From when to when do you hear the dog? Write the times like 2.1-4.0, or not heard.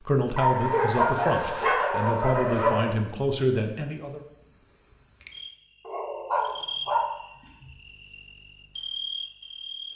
0.3-2.9, 5.8-7.7.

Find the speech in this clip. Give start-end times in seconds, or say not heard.
0.0-4.2.